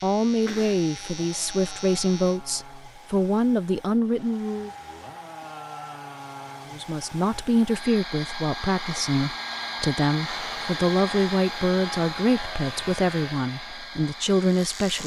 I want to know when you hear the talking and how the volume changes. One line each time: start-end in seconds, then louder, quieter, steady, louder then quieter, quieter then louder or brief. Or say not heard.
0.0-4.7 steady
6.7-15.0 steady.